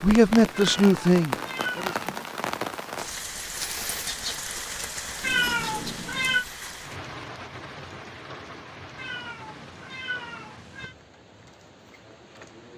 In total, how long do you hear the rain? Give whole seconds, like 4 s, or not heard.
13 s.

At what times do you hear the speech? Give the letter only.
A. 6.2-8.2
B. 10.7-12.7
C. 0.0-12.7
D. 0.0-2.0
D.